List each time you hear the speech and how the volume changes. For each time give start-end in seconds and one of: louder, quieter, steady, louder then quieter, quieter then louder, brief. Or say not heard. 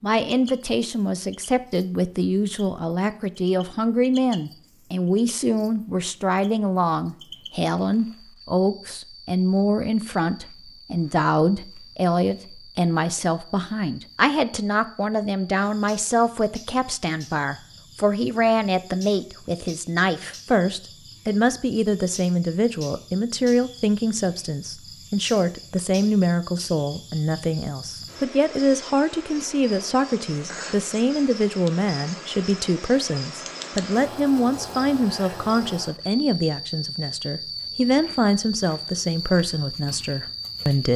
0.0-40.9 steady.